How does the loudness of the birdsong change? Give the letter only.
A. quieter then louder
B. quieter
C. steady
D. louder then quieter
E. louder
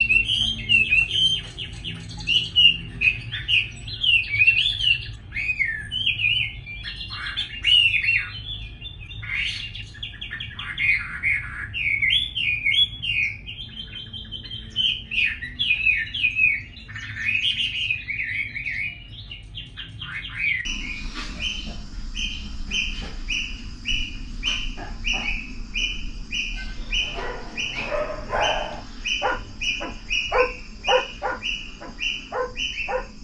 B.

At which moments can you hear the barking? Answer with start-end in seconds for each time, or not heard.
26.9-33.0.